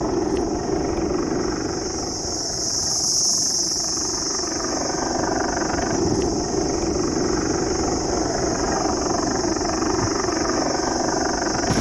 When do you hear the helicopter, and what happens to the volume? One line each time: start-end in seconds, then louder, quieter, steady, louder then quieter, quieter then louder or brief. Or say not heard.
0.0-11.7 quieter then louder.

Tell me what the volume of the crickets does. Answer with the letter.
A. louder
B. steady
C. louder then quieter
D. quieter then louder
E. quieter
C.